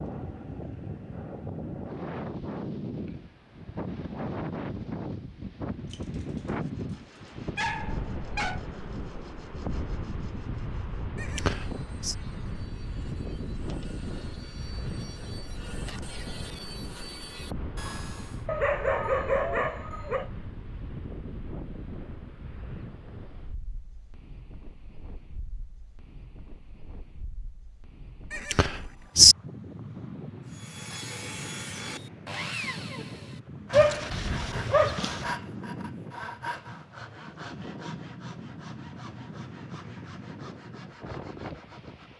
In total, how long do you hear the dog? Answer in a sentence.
You can hear the dog for 6 seconds altogether.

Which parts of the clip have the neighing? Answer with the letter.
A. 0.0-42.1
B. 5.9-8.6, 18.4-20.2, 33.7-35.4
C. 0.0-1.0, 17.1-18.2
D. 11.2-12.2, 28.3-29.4
D.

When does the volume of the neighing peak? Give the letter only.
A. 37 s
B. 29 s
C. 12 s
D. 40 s
B.